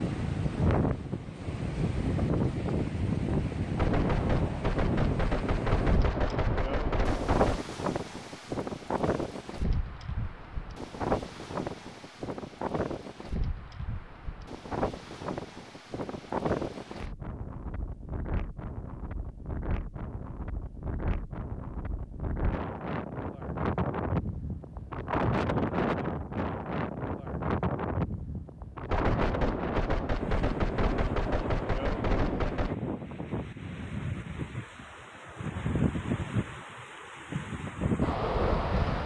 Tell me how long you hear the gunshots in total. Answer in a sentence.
The gunshots can be heard for 8 seconds in total.